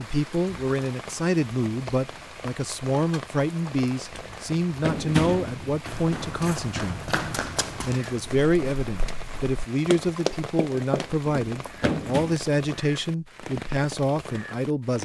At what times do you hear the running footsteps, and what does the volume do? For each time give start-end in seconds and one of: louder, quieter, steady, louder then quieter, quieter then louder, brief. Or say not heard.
4.8-12.4 quieter then louder.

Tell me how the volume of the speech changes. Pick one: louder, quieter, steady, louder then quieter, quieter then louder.
steady.